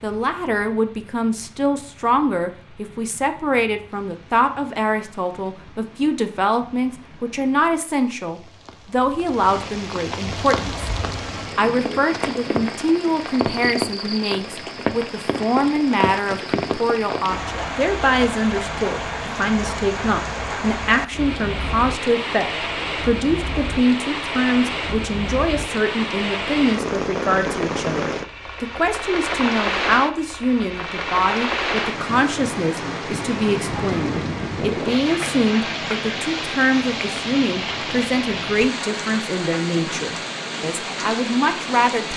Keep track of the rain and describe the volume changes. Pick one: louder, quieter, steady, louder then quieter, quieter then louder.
louder.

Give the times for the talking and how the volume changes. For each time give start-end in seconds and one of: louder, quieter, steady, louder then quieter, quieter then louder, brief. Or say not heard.
0.0-10.8 steady
11.6-42.1 steady.